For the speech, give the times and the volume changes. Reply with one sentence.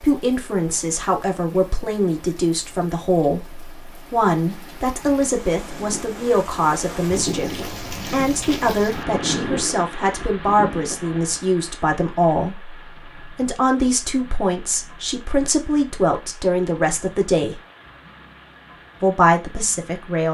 You can hear the speech from 0.0 to 17.6 s, at a steady volume; and briefly from 19.0 to 20.2 s.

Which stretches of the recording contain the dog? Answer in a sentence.
You can't hear the dog here.